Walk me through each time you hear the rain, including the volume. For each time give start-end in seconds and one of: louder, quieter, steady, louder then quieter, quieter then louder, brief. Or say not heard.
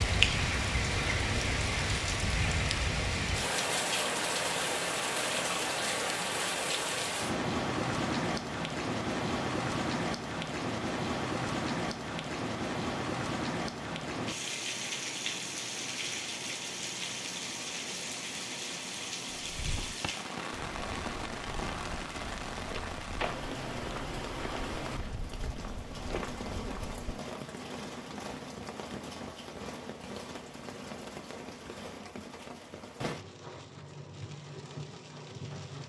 0.0-35.8 quieter.